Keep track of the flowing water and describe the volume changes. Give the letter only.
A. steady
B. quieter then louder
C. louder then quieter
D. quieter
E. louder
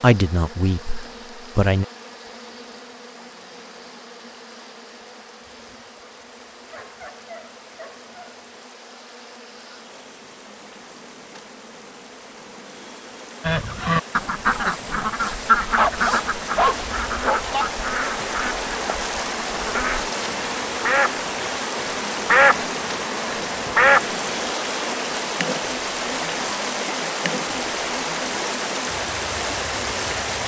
E.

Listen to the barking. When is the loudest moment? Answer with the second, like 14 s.
17 s.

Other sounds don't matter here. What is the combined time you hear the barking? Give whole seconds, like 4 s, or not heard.
4 s.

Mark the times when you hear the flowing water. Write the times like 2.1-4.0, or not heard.
0.0-30.4.